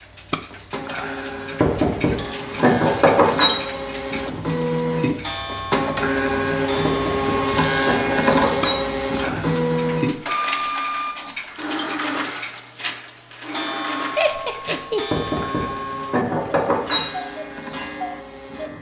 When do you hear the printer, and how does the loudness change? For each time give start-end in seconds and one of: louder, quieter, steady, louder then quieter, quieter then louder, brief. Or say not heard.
0.0-18.7 louder then quieter.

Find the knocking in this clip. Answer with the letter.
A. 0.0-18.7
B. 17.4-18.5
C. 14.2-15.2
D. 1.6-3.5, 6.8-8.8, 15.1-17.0
D.